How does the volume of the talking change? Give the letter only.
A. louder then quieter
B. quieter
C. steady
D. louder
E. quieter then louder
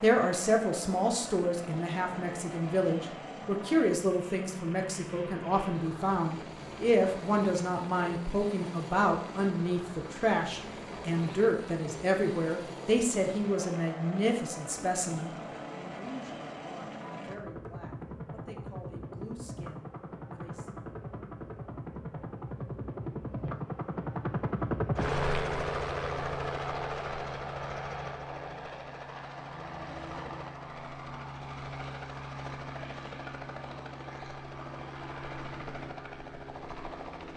B.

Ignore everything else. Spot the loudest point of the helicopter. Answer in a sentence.
The loudest moment of the helicopter is at 25 seconds.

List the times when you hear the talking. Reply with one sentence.
The talking can be heard from 0.0 to 20.7 s.